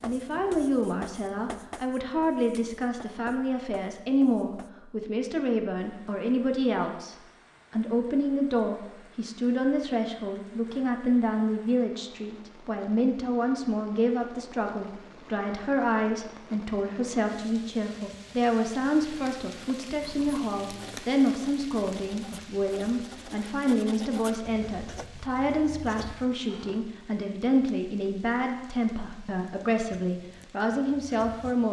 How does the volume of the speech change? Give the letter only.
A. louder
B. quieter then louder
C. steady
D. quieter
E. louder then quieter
C.